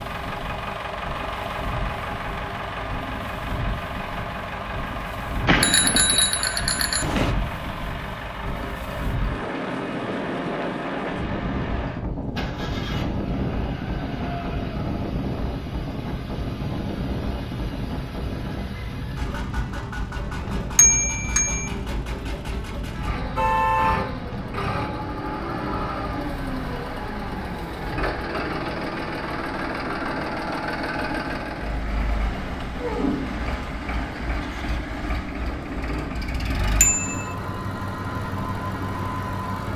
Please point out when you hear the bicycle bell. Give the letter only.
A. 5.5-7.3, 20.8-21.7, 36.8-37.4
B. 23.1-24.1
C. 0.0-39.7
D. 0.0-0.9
A.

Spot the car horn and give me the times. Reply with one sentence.
The car horn can be heard from 23.1 to 24.1 s.